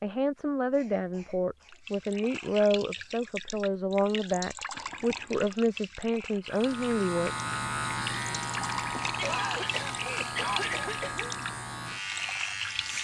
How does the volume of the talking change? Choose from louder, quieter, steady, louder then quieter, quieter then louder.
steady.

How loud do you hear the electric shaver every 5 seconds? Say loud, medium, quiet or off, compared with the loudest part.
off, loud, loud.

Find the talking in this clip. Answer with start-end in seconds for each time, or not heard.
0.0-7.3.